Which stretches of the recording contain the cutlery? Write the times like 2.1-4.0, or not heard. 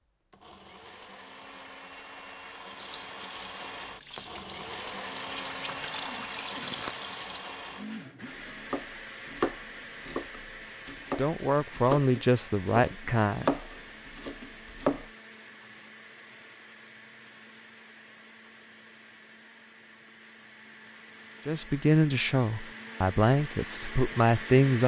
not heard.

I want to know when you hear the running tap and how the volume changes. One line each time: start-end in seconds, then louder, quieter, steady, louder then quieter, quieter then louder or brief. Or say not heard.
2.6-7.5 louder.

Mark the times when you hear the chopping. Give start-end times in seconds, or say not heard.
8.5-15.1.